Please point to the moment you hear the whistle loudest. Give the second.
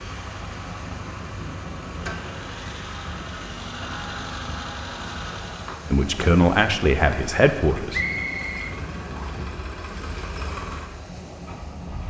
8 s.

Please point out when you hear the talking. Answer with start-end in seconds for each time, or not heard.
5.9-8.0.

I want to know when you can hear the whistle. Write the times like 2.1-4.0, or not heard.
7.9-9.4.